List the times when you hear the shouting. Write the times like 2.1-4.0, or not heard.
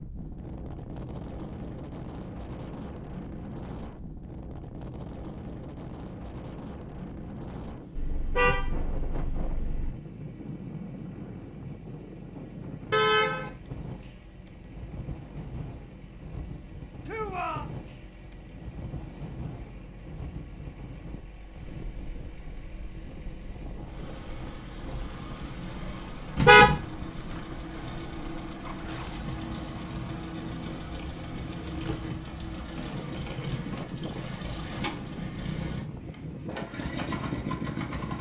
17.1-17.7.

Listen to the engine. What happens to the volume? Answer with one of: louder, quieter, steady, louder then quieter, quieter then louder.
louder.